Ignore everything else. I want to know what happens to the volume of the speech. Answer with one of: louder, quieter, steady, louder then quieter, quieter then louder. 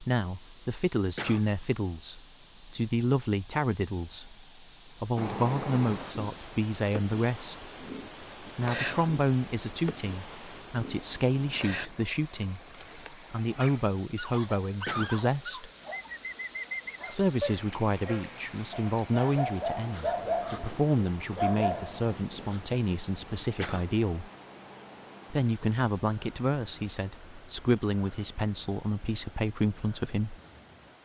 steady.